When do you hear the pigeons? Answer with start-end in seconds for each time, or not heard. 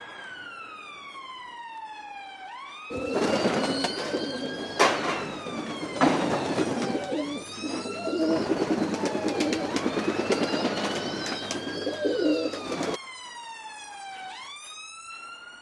2.9-13.0.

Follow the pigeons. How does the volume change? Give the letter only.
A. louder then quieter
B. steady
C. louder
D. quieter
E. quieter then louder
B.